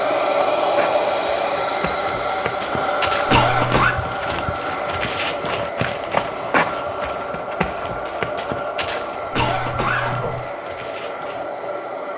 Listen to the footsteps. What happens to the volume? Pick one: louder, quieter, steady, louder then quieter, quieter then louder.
louder then quieter.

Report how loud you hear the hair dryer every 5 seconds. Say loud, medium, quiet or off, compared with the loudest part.
loud, medium, medium.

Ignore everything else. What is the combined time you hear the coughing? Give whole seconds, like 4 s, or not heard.
2 s.